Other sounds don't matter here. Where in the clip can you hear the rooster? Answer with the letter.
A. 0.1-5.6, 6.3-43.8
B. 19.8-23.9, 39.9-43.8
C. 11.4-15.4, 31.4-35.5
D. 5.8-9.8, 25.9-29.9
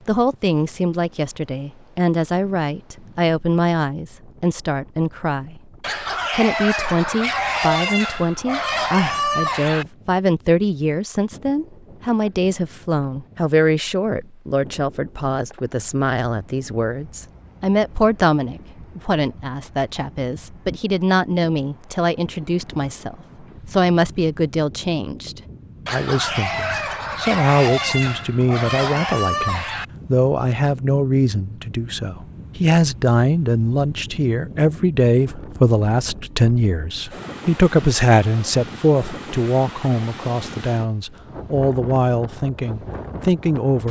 D.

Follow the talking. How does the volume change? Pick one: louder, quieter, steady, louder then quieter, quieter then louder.
steady.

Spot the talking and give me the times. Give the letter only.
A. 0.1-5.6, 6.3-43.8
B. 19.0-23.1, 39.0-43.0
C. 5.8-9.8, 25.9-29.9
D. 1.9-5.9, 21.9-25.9
A.